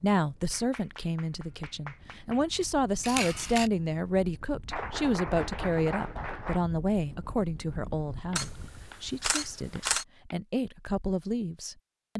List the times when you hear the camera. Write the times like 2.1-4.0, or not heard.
3.0-3.7, 8.3-10.1.